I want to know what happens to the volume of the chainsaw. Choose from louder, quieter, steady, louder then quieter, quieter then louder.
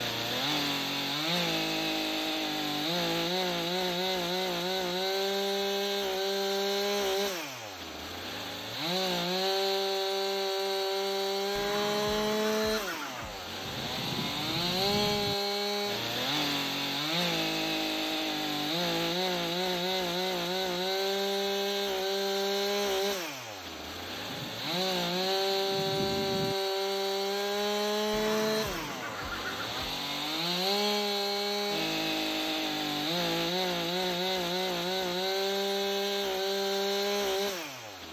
steady.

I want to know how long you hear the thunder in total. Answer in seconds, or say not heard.
4 s.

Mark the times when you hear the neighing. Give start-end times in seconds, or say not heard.
11.6-13.4, 28.1-30.0.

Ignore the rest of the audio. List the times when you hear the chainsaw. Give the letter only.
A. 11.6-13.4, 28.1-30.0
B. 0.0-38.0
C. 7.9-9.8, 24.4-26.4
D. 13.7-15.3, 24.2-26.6
B.